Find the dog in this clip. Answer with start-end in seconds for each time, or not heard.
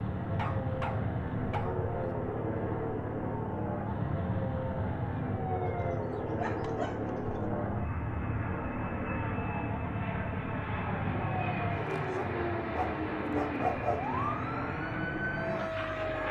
0.3-1.9, 5.7-7.3, 12.1-14.1.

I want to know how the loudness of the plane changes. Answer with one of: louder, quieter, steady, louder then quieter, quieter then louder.
steady.